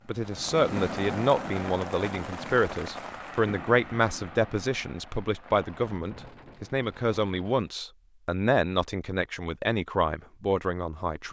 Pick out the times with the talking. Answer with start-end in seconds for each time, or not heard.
0.1-11.2.